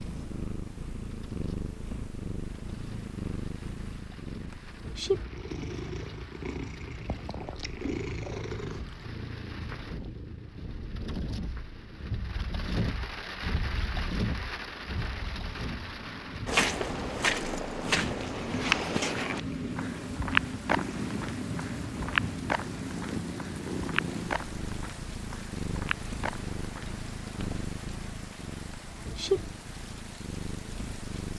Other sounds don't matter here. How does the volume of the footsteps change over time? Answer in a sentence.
The volume of the footsteps goes down.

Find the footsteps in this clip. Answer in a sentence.
The footsteps can be heard from 16.4 to 27.6 s.